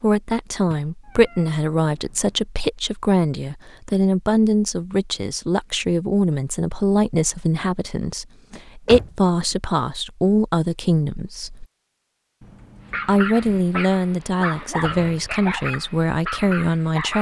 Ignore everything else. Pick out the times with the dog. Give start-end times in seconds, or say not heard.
12.8-17.1.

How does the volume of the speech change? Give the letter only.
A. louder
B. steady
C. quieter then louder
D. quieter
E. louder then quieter
B.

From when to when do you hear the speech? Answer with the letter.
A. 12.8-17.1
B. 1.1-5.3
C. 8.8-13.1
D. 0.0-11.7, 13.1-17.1
D.